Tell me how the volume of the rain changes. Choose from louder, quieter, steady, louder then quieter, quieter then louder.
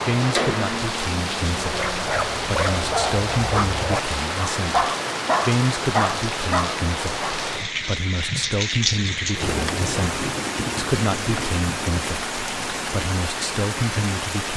steady.